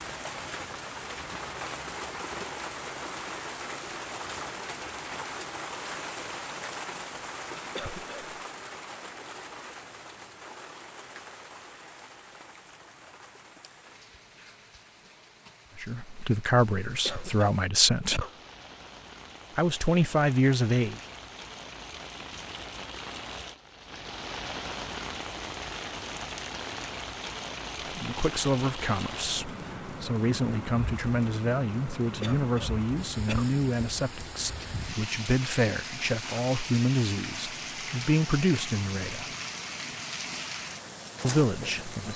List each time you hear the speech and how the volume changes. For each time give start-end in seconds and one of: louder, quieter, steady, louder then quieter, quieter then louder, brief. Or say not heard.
15.8-18.2 brief
19.6-20.9 brief
27.9-39.3 steady
41.2-42.1 brief.